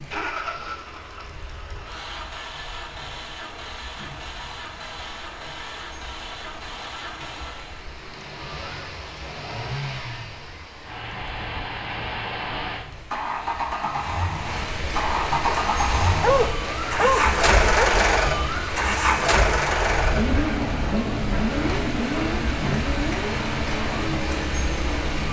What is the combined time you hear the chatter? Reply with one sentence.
You can't hear the chatter here.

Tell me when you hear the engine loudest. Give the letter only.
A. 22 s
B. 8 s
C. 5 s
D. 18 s
D.